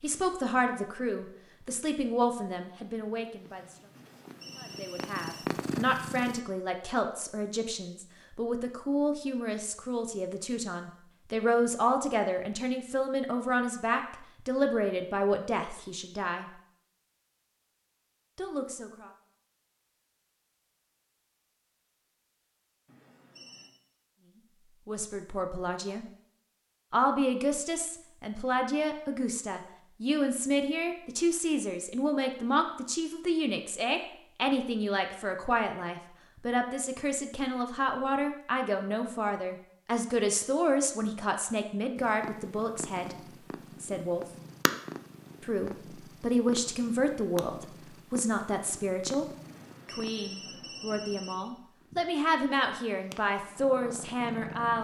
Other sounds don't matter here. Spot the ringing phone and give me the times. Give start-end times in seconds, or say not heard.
3.9-5.5, 22.9-23.7, 49.4-51.4.